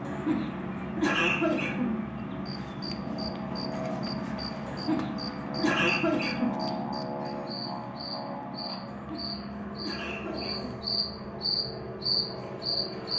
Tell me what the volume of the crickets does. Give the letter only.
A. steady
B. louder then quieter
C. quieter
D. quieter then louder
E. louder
E.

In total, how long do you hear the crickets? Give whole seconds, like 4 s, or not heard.
11 s.